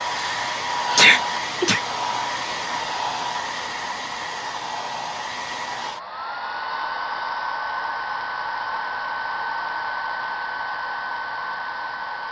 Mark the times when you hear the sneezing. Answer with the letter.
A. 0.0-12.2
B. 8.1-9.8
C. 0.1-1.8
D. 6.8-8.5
C.